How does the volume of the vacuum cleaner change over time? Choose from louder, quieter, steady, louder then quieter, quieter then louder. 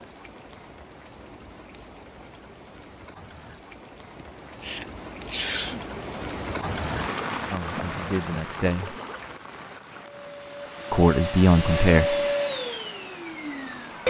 louder then quieter.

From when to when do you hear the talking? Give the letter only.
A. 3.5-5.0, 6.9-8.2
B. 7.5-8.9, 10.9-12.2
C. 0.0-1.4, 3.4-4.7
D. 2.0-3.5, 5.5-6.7
B.